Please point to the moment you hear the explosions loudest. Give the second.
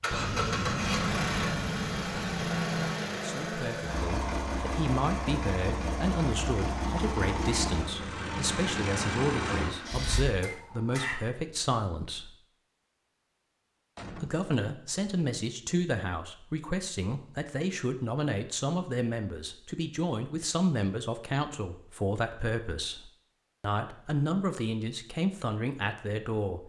1 s.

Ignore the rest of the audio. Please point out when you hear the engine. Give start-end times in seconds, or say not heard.
0.0-11.2.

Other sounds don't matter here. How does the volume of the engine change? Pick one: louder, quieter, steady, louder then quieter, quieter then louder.
steady.